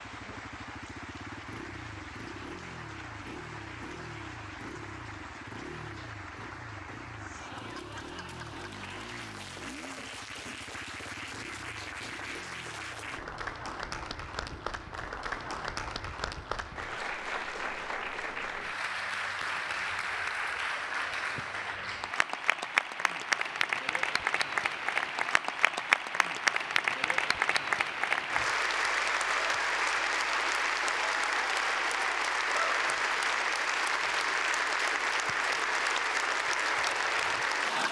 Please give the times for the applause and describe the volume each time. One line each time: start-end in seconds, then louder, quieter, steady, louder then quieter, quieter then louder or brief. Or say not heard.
0.0-37.8 louder.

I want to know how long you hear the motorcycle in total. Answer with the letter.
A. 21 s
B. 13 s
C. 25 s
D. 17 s
D.